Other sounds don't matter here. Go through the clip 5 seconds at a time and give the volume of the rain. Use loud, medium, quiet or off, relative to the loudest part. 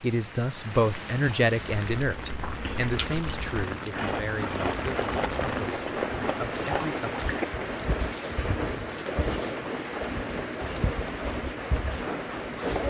medium, loud, loud.